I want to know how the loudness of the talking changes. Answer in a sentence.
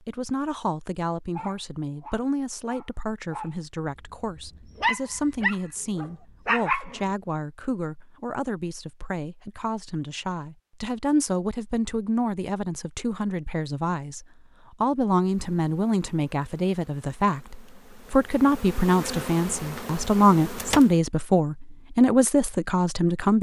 The loudness of the talking goes up.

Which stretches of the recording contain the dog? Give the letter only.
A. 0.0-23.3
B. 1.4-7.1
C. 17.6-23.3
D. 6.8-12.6
B.